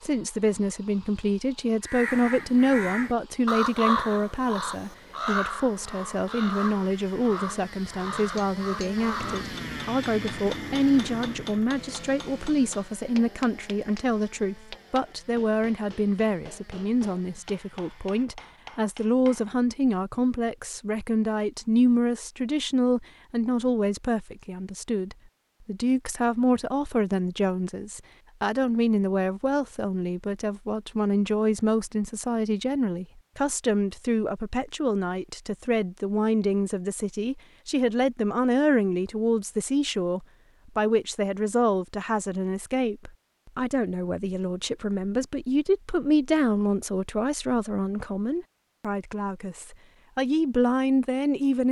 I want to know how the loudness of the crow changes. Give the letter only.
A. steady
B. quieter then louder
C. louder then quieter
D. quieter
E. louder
D.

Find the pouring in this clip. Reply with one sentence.
The pouring can't be heard in this clip.